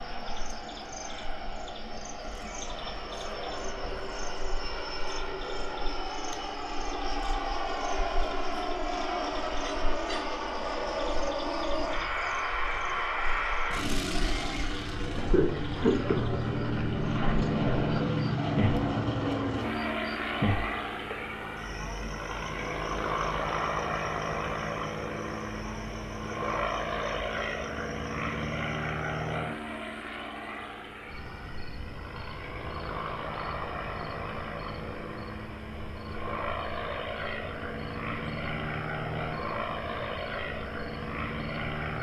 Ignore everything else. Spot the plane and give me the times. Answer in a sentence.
The plane can be heard from 0.0 to 41.9 s.